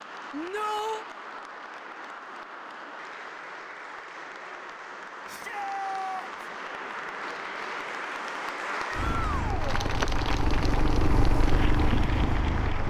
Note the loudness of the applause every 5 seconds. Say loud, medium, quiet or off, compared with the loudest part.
medium, loud, loud.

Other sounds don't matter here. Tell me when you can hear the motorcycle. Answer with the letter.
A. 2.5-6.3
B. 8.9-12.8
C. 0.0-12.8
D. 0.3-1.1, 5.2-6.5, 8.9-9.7
B.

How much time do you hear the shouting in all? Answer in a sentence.
You can hear the shouting for 3 seconds altogether.